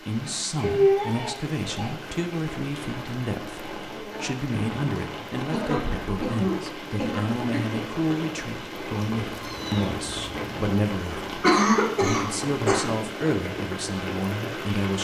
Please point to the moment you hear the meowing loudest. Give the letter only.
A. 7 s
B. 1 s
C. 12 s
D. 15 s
B.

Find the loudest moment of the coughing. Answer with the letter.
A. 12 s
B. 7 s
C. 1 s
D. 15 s
A.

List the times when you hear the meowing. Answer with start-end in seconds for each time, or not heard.
0.6-1.4, 9.2-10.6.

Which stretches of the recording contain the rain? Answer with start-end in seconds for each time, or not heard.
0.0-15.0.